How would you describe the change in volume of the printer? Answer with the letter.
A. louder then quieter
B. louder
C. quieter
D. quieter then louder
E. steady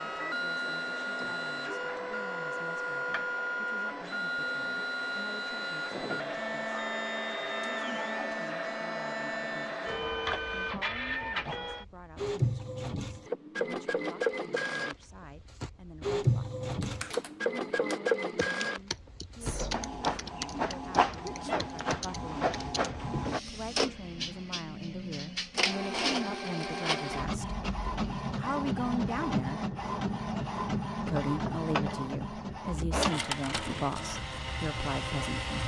E.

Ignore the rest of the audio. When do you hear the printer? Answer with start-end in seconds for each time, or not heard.
0.0-35.6.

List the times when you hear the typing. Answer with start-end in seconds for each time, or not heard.
16.8-22.9.